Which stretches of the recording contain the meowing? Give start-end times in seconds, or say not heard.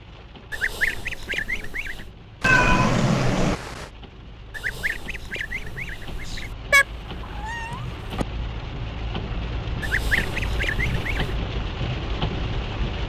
2.4-3.9, 6.7-8.2.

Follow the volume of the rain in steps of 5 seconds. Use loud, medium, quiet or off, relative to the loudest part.
quiet, medium, loud.